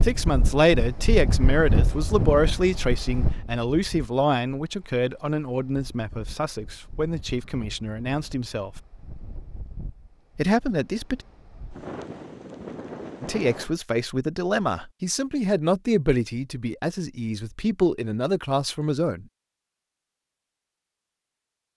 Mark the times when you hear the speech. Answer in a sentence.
The speech can be heard from 0.0 to 8.7 s, from 10.3 to 11.2 s and from 13.2 to 19.2 s.